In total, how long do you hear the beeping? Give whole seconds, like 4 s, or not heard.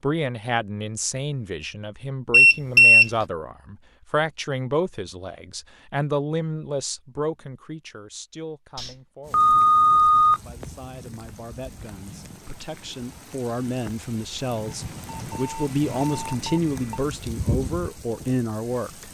5 s.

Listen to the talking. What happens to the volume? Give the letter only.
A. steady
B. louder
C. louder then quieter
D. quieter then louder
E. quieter
D.